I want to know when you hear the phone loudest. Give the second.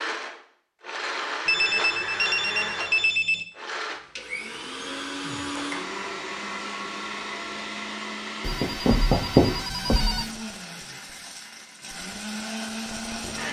9 s.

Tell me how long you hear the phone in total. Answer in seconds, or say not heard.
4 s.